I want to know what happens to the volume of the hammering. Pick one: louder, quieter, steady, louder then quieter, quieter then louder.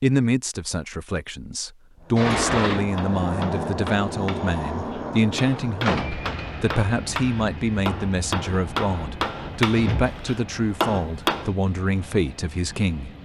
louder.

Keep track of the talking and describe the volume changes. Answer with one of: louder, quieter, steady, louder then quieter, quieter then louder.
steady.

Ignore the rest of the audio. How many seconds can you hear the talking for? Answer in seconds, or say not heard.
13 s.